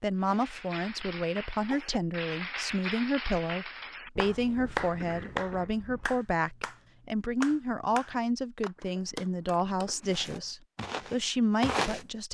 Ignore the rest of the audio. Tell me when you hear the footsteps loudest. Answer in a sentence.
The loudest moment of the footsteps is at 12 seconds.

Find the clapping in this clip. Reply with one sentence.
The clapping can be heard from 0.2 to 9.9 s.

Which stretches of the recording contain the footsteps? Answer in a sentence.
The footsteps can be heard from 10.1 to 12.1 s.